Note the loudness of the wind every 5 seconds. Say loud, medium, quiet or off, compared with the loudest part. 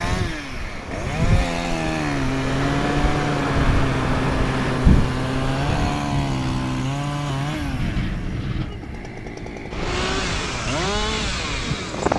loud, medium, loud.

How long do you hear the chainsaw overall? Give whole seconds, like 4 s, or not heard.
12 s.